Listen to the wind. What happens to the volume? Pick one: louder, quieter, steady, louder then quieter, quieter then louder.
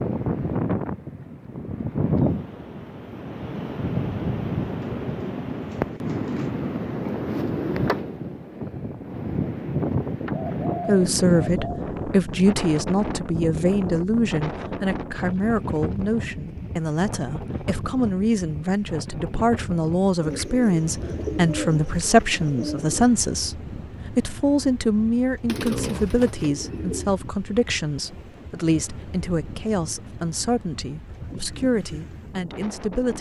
quieter.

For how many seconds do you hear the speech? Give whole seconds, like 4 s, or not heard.
22 s.